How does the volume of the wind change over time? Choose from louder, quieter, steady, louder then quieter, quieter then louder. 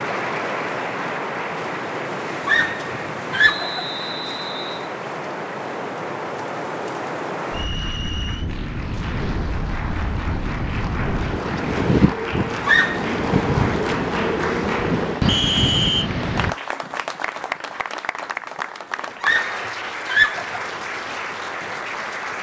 louder.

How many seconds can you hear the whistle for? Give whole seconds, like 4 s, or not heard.
3 s.